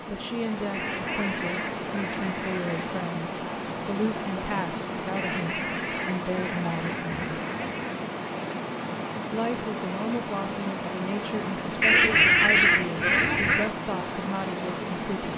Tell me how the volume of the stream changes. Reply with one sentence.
The volume of the stream stays about the same.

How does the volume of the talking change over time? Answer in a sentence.
The volume of the talking stays about the same.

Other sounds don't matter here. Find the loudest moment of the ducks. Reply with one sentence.
The loudest moment of the ducks is at 12 seconds.